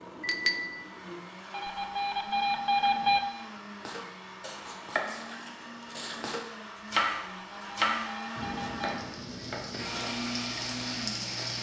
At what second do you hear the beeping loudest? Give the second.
3 s.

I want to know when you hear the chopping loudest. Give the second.
7 s.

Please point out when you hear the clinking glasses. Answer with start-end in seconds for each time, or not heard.
0.2-0.8.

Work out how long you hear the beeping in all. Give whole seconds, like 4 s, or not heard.
3 s.